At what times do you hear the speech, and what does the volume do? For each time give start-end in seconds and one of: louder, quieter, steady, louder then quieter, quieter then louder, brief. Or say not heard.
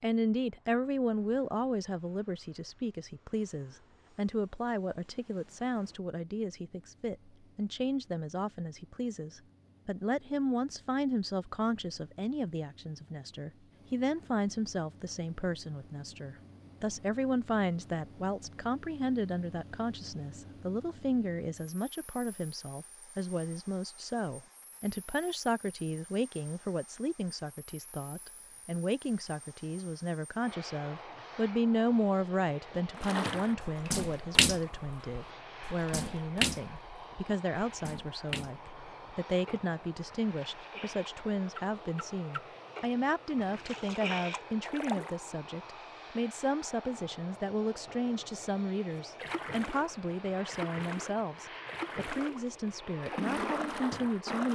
0.0-54.5 steady.